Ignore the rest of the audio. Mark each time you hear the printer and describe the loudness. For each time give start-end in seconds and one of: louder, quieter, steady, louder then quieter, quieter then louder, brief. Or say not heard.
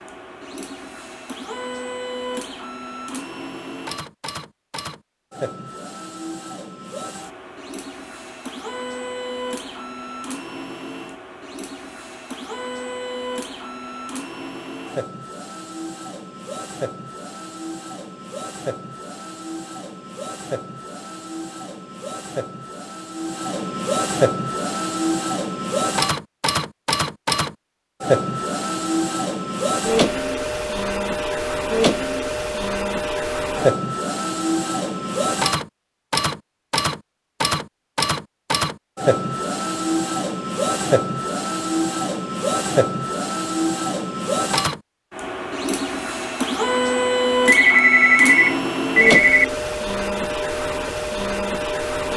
0.0-52.1 louder.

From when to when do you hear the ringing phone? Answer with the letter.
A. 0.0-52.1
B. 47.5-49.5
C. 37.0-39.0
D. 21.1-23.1
B.